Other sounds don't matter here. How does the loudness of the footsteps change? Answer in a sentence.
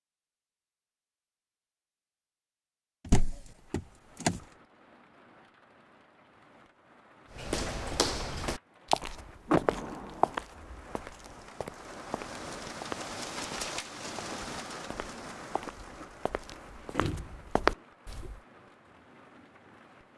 The loudness of the footsteps goes down, then up.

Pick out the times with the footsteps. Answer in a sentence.
The footsteps can be heard from 7.3 to 18.4 s.